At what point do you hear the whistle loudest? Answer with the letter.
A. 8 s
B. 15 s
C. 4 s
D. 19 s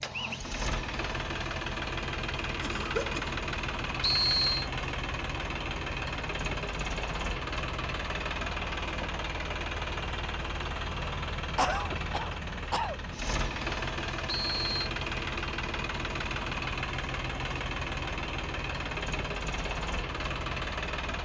C.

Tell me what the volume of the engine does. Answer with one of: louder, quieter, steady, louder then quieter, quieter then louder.
steady.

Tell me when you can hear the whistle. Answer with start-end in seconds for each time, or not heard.
4.0-4.7, 14.2-14.9.